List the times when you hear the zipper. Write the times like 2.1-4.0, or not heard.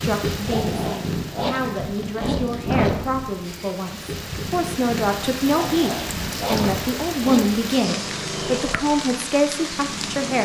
0.5-3.0, 5.5-8.0.